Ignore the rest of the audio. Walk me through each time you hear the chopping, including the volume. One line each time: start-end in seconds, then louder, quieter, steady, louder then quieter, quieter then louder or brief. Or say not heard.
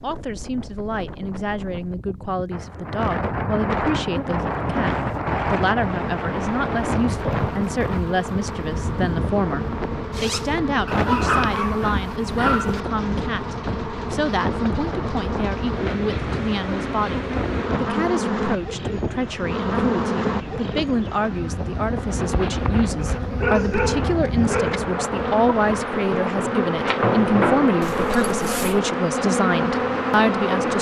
not heard.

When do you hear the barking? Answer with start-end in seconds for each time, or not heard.
10.8-12.8, 23.2-24.8.